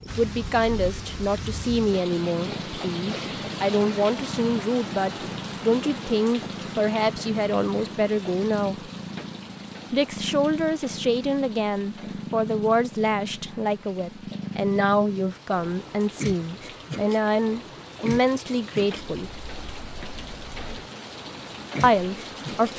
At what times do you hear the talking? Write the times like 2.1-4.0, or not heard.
0.1-8.9, 9.9-19.3, 21.8-22.7.